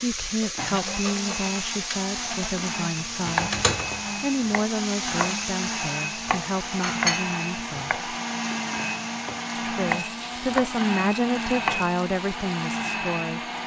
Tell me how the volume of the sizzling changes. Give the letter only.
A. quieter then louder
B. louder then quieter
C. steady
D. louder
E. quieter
E.